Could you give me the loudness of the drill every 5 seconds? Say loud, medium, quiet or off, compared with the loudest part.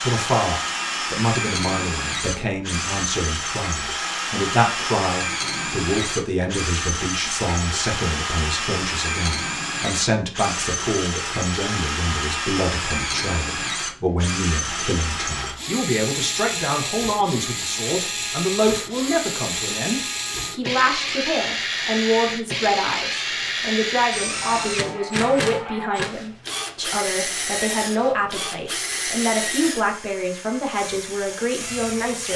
loud, loud, loud, loud, loud, loud, medium.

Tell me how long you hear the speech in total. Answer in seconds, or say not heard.
32 s.